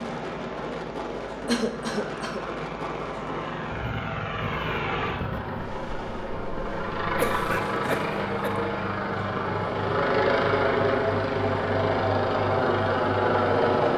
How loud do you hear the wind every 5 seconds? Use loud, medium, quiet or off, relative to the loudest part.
loud, loud, off.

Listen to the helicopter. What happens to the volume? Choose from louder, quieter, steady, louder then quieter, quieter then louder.
louder.